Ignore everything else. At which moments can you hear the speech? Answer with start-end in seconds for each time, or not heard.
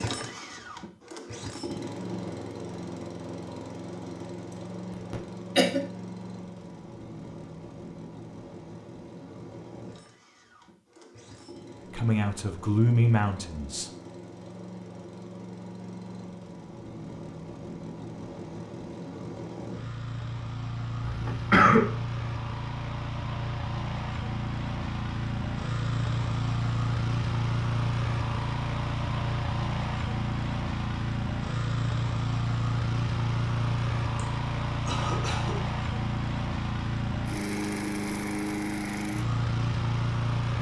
11.9-13.9.